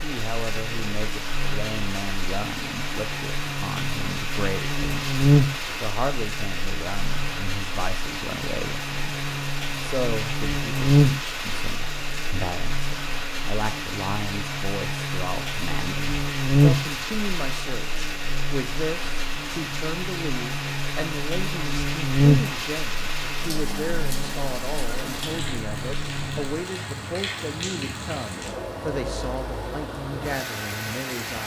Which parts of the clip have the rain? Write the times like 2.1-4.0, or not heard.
0.0-31.4.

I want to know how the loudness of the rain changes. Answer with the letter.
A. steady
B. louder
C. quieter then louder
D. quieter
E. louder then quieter
A.